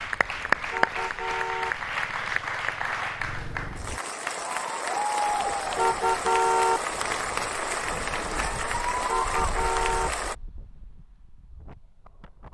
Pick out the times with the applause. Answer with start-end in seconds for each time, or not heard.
0.0-10.3.